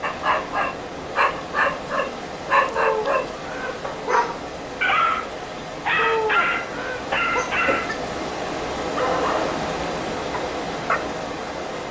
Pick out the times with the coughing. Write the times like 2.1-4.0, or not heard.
2.7-4.2, 6.0-8.0.